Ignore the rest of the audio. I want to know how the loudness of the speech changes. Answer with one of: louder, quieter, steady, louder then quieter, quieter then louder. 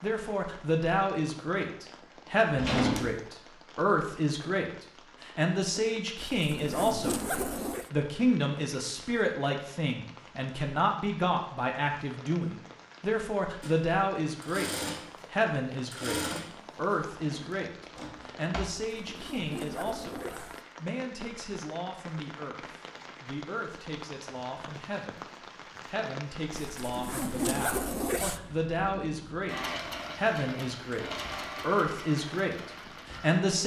quieter then louder.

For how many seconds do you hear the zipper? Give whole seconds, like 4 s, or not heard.
5 s.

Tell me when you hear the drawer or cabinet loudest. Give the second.
3 s.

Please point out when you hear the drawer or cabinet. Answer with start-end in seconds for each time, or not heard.
2.5-3.2, 17.1-18.7.